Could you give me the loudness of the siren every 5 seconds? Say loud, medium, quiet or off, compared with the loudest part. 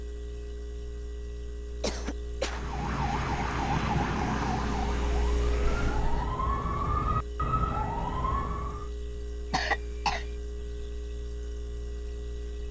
loud, loud, off.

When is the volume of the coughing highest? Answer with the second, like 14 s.
10 s.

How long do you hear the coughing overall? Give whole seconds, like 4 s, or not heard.
2 s.